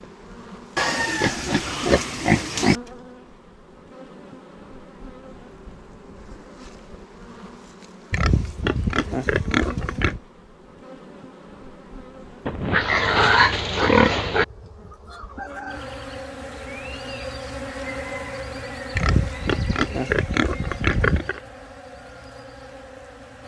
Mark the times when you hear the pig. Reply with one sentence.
You can hear the pig from 0.8 to 2.8 s, from 8.1 to 10.2 s, from 12.4 to 14.4 s and from 18.9 to 21.4 s.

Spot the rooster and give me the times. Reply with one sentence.
You can hear the rooster from 14.6 to 16.0 s.